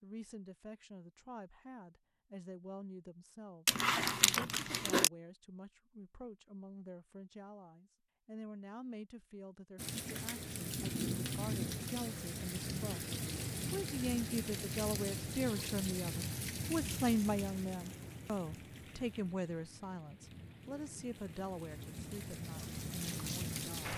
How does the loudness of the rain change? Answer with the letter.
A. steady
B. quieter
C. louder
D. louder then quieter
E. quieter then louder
E.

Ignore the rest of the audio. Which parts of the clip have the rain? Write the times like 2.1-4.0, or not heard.
9.8-23.9.